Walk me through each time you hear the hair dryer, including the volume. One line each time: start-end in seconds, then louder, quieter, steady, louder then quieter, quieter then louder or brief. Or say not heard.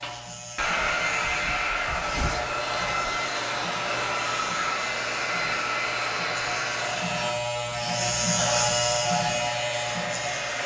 0.0-10.6 quieter.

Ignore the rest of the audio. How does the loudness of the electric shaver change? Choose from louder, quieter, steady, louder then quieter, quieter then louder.
louder.